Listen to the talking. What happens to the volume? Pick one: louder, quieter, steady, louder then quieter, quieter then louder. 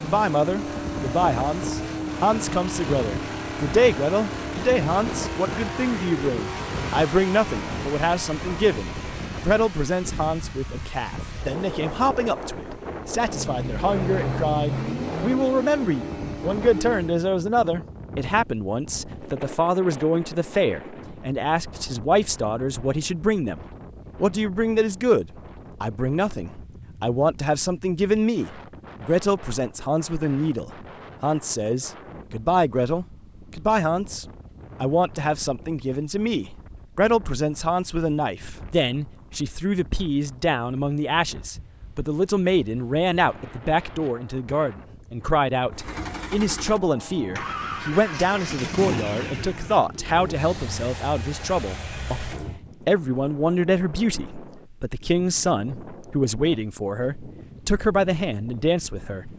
steady.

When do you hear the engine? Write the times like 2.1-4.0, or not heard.
0.0-17.2, 45.7-52.6.